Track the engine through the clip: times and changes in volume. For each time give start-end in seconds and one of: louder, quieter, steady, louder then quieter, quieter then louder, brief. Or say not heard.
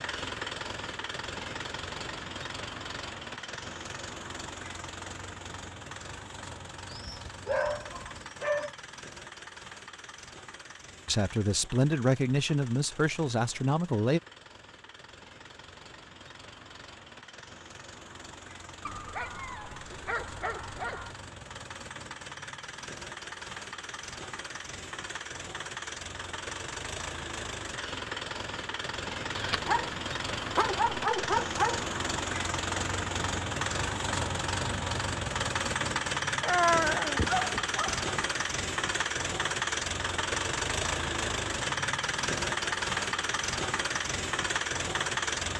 0.0-45.5 quieter then louder.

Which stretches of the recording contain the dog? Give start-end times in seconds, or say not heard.
6.9-8.8, 18.9-21.1, 29.4-31.9, 36.4-38.0.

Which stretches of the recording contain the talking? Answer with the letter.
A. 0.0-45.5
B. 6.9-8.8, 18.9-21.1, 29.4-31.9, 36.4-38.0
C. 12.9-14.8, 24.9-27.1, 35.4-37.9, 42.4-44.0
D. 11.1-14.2
D.